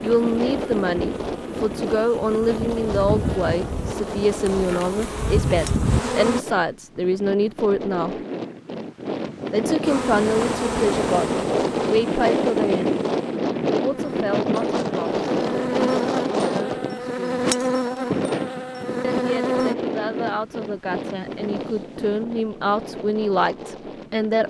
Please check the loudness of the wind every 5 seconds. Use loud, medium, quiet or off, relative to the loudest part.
medium, medium, loud, loud, medium.